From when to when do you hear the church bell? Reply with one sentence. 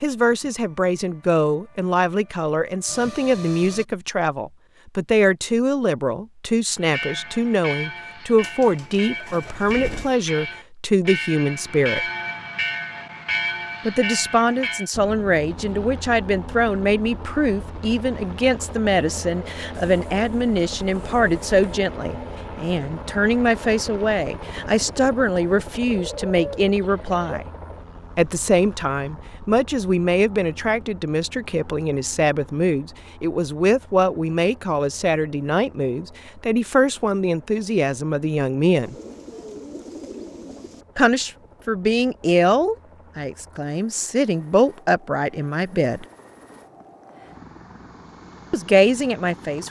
The church bell can be heard from 6.8 to 14.9 s.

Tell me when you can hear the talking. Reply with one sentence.
You can hear the talking from 0.0 to 12.1 s, from 13.8 to 27.4 s, from 28.1 to 39.0 s, from 41.0 to 46.0 s and from 48.5 to 49.6 s.